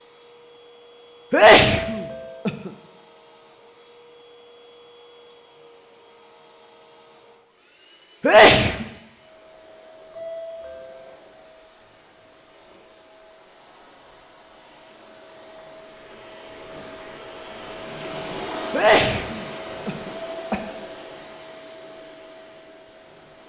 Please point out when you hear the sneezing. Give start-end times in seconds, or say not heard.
1.3-2.7, 8.2-8.8, 18.7-20.6.